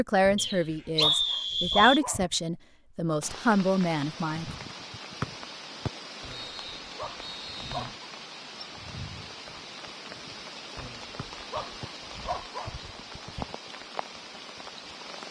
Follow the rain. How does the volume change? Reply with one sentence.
The loudness of the rain stays about the same.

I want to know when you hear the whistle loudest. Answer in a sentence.
The volume of the whistle peaks at 1 second.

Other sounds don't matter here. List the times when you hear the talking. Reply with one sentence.
The talking can be heard from 0.0 to 4.5 s.